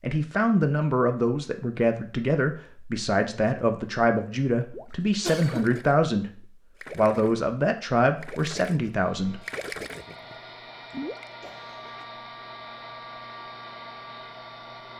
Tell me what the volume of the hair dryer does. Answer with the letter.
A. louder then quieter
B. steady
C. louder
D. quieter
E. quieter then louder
C.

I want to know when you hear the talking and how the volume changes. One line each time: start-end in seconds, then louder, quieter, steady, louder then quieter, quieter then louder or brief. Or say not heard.
0.0-9.4 steady.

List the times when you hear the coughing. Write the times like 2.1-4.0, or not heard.
5.2-5.8, 11.4-12.1.